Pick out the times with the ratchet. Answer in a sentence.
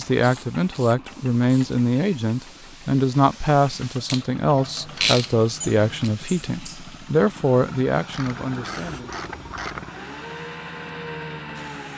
The ratchet can be heard from 0.1 to 1.8 s, from 4.0 to 6.1 s and from 8.1 to 9.9 s.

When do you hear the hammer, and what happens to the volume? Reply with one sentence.
The hammer can't be heard in this clip.